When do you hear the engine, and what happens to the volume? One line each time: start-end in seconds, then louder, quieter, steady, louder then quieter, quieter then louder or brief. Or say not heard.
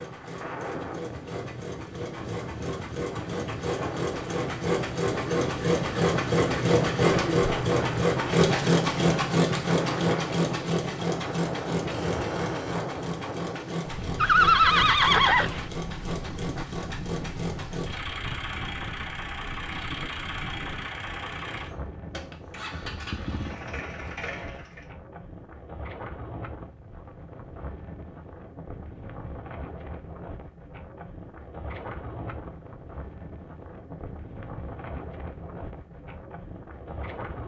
0.0-24.9 louder then quieter.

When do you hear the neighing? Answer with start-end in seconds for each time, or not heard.
14.2-15.7.